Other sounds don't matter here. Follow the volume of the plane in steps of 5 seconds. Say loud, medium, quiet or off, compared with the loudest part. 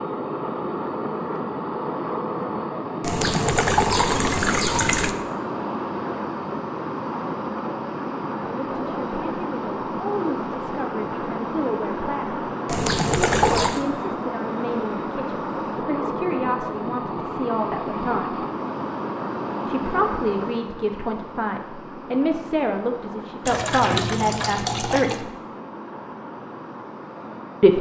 loud, loud, loud, loud, medium, medium.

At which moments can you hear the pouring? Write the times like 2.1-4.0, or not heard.
3.0-5.2, 12.7-13.8, 23.4-25.2.